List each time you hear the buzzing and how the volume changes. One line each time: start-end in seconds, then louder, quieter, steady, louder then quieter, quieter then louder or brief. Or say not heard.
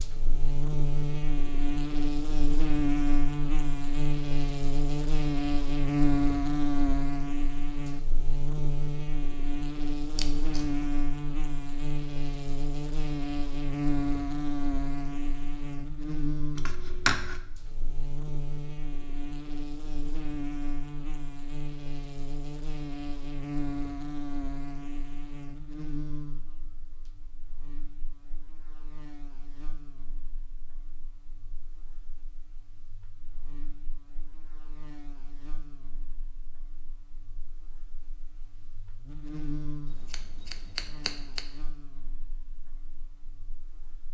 0.0-44.0 quieter then louder.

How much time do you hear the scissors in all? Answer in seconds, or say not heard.
3 s.